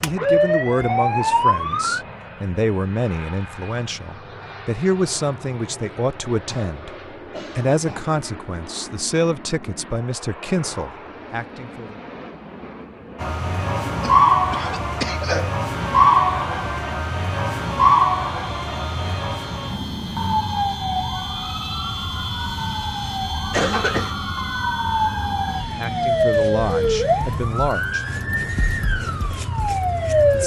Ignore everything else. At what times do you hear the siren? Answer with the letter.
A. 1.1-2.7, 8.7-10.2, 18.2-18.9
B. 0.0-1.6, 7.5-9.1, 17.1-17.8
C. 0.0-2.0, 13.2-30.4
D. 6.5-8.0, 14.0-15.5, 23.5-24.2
C.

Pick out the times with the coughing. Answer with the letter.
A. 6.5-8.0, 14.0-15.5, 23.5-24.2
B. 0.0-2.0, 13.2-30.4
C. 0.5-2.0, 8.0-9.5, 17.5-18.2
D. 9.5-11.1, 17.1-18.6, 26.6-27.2
A.